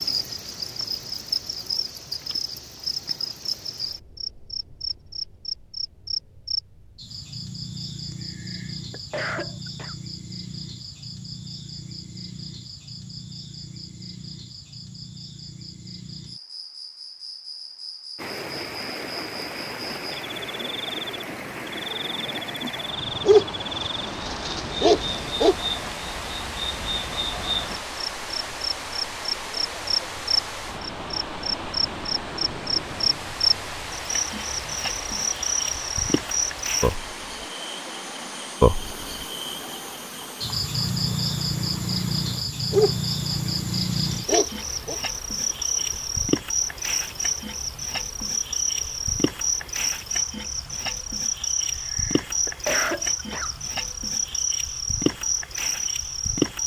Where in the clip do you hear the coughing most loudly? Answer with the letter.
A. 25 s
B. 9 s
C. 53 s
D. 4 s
C.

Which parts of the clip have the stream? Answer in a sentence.
The stream can be heard from 18.1 to 56.6 s.